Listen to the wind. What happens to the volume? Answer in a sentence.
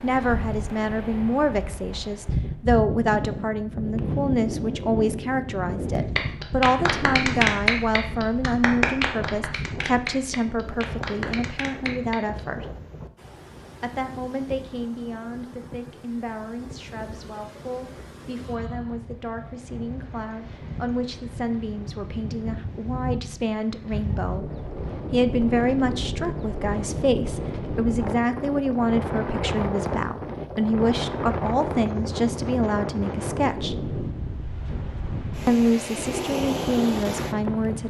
The volume of the wind goes down, then up.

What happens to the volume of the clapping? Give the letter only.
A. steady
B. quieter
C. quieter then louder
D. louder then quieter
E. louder
B.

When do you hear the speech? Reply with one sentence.
The speech can be heard from 0.0 to 12.7 s, from 13.8 to 24.4 s, from 25.1 to 33.8 s and from 35.5 to 37.8 s.